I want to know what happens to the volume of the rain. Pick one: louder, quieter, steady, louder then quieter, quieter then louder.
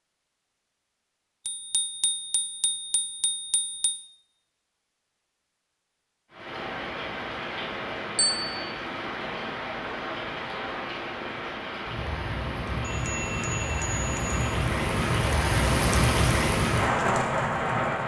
louder.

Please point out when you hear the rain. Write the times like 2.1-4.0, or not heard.
6.3-18.0.